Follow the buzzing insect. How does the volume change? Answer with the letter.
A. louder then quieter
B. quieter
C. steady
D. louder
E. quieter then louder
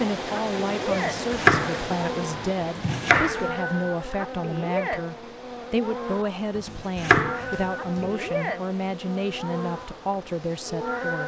B.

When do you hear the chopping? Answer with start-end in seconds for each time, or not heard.
0.9-3.5, 6.5-8.1.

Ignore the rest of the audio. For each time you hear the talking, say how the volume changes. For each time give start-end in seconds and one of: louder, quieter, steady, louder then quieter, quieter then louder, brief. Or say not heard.
0.0-11.2 steady.